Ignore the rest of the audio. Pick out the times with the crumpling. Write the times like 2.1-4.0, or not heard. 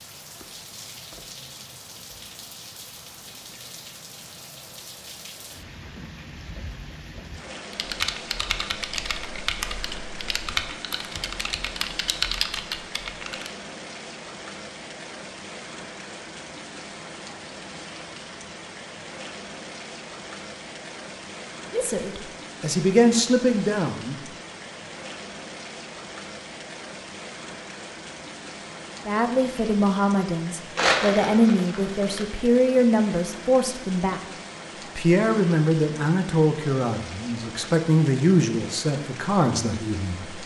30.8-32.2.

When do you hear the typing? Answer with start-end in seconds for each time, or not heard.
7.7-13.5.